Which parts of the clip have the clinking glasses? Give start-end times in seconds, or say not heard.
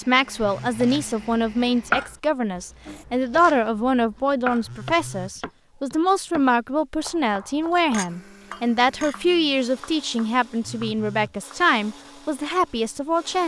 7.9-9.2.